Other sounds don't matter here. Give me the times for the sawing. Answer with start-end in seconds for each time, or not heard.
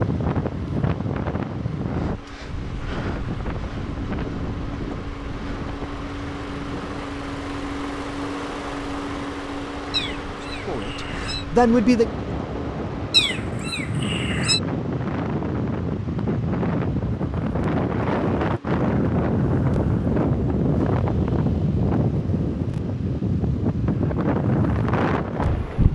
not heard.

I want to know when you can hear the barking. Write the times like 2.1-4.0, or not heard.
not heard.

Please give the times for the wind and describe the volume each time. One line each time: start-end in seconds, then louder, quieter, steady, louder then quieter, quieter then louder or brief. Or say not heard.
0.0-25.9 quieter then louder.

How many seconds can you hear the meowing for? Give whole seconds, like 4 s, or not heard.
3 s.